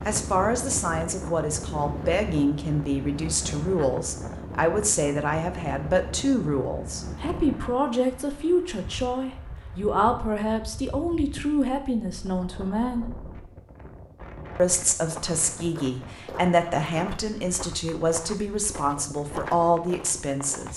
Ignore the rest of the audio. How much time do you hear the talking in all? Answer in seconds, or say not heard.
19 s.